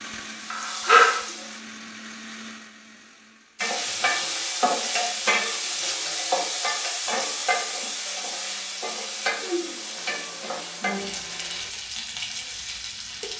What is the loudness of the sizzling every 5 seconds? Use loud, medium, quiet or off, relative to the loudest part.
loud, medium, medium.